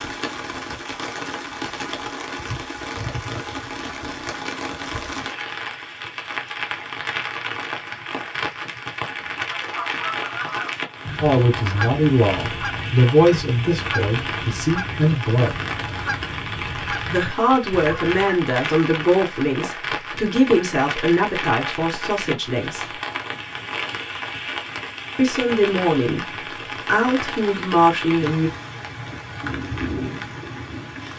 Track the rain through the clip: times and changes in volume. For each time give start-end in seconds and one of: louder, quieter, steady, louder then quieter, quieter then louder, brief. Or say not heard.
0.0-31.1 steady.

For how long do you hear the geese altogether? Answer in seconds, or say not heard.
9 s.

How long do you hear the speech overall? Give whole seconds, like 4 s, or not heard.
13 s.